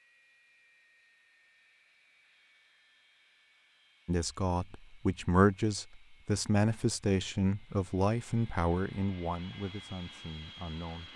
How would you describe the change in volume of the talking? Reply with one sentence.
The loudness of the talking goes down.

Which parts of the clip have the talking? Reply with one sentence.
The talking can be heard from 4.0 to 11.1 s.